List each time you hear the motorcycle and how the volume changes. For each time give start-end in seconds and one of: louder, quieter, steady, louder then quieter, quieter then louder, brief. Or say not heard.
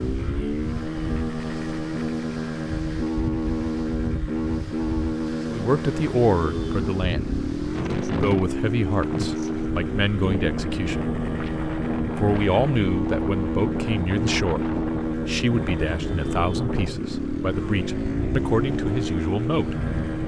0.0-20.2 steady.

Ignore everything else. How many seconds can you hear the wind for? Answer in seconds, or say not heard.
20 s.